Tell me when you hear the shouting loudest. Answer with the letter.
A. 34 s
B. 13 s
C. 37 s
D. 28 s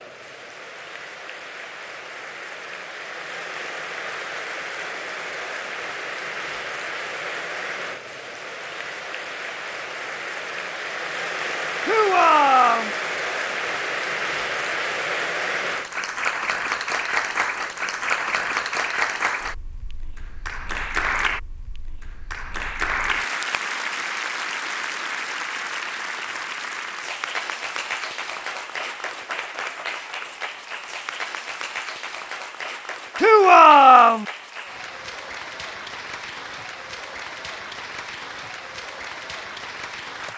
A.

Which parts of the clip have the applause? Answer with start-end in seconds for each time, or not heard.
0.0-40.3.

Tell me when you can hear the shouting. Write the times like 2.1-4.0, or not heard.
11.8-12.9, 33.1-34.2.